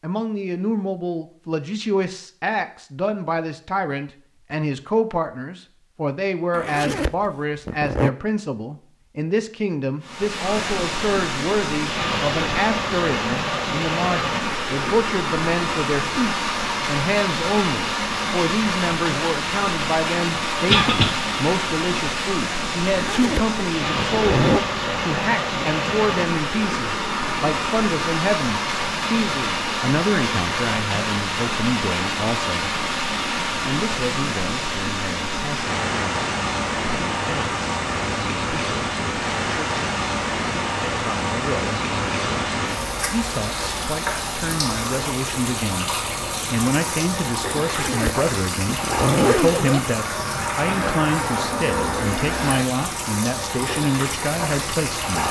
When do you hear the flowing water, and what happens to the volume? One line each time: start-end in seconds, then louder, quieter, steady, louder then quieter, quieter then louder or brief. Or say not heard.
10.0-55.2 steady.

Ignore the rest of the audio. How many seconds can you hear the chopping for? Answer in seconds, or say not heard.
not heard.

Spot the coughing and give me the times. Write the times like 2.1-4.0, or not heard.
20.6-21.1.